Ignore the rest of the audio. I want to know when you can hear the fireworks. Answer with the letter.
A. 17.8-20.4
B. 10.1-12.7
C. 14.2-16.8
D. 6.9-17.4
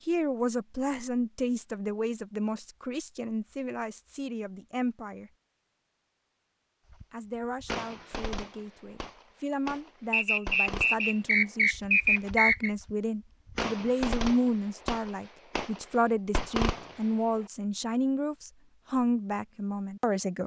D.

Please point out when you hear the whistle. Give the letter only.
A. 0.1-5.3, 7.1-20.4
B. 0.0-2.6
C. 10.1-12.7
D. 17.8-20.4
C.